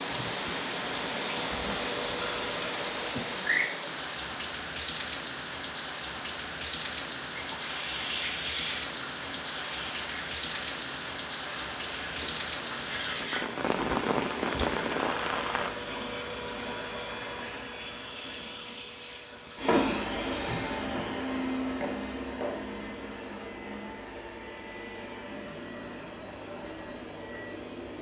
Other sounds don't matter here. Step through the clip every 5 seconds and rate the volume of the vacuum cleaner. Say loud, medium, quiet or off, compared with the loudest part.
loud, loud, loud, loud, loud, medium.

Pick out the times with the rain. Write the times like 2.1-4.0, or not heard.
0.0-15.8.